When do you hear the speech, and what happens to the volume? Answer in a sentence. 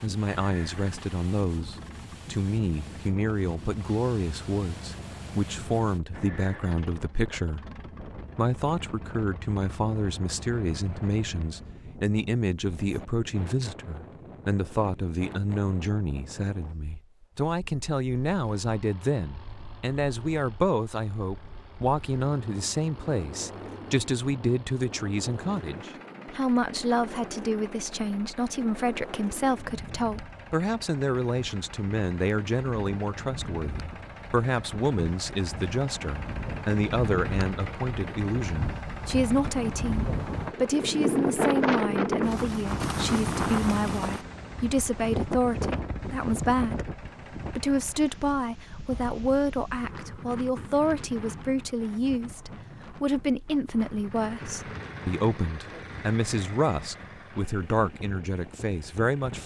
The speech can be heard from 0.0 to 7.7 s, at a steady volume; and from 8.3 to 59.4 s, at a steady volume.